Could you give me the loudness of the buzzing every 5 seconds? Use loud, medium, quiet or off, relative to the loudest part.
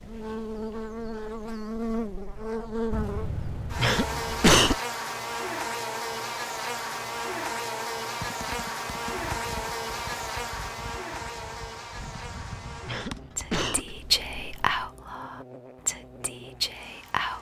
loud, loud, medium, quiet.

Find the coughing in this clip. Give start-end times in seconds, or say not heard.
2.9-4.8, 11.9-13.9.